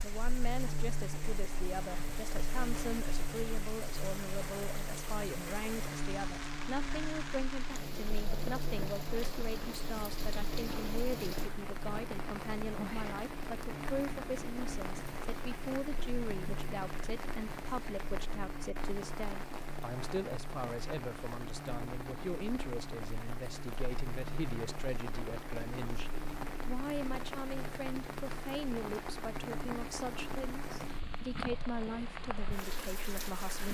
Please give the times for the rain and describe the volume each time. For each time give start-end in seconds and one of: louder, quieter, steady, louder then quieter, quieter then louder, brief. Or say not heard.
0.0-33.7 steady.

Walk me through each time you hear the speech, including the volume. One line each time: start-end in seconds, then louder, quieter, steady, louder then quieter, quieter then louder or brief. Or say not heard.
0.0-33.7 steady.